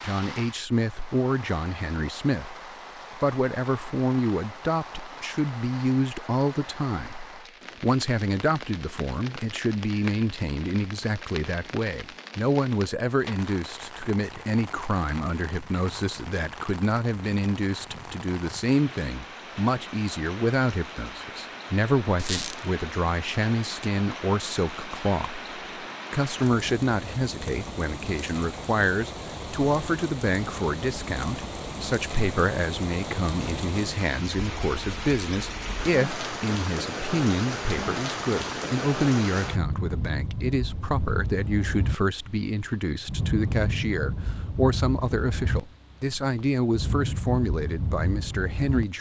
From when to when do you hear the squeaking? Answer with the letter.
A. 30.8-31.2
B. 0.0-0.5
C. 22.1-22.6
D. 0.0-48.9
C.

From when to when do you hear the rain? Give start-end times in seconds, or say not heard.
0.0-48.9.